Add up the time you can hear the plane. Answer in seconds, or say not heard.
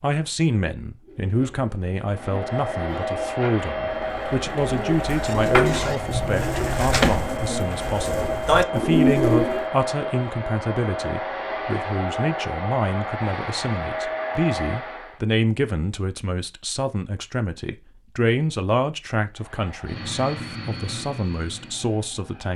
16 s.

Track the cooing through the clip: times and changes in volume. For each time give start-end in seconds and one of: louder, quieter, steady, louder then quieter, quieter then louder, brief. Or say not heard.
1.1-9.7 louder.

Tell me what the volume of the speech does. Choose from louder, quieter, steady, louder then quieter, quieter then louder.
steady.